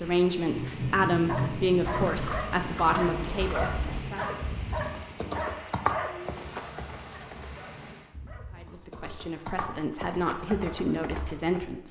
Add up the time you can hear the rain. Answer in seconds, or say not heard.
8 s.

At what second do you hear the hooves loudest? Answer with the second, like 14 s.
6 s.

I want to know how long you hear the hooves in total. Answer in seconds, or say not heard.
10 s.